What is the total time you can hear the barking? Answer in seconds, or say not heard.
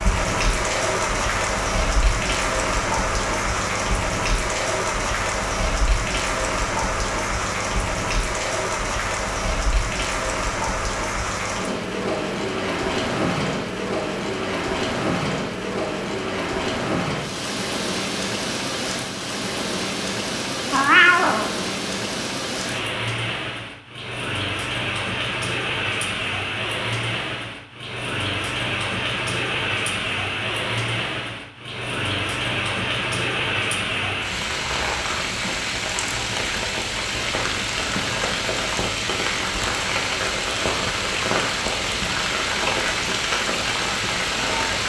not heard.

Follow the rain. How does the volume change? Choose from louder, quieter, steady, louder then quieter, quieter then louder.
steady.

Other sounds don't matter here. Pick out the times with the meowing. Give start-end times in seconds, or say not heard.
20.7-21.5.